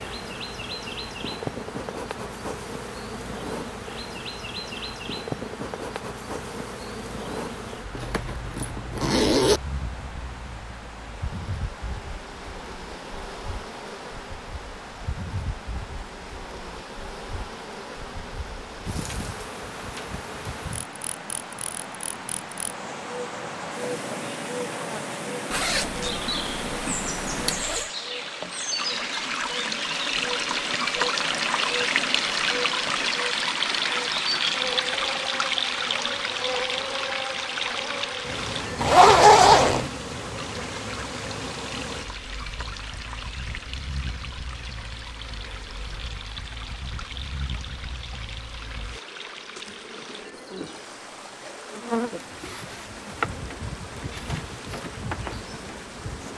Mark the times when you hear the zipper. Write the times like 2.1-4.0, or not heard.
7.9-9.6, 25.5-27.9, 38.8-39.9.